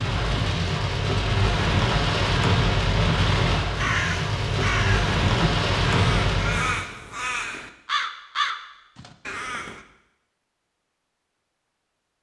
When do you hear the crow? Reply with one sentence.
You can hear the crow from 3.8 to 9.8 s.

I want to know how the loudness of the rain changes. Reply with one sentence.
The loudness of the rain stays about the same.